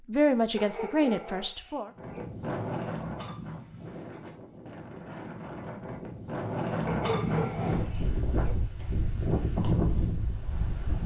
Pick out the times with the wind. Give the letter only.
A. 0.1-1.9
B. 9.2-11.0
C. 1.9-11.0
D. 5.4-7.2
C.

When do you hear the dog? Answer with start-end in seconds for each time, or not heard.
0.6-2.2, 6.8-8.6.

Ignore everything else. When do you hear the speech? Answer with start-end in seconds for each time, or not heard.
0.1-1.9.